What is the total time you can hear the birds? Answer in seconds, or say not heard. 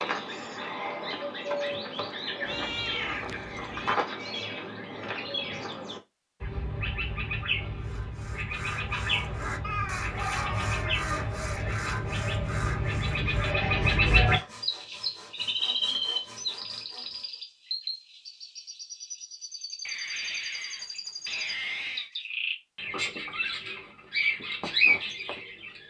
26 s.